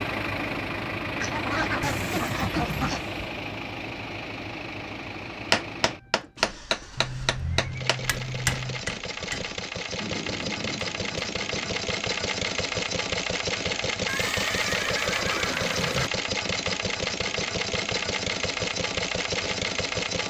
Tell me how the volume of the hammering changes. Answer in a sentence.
The volume of the hammering goes down.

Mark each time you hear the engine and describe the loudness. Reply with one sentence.
The engine can be heard from 0.0 to 20.2 s, getting quieter then louder.